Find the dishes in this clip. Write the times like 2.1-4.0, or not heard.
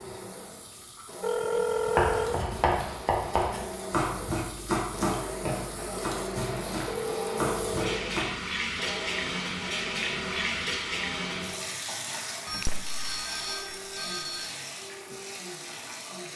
not heard.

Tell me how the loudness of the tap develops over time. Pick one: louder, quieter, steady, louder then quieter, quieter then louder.
louder then quieter.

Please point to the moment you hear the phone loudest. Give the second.
2 s.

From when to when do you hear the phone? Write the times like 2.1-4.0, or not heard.
1.2-2.4, 6.8-8.0, 12.4-14.6.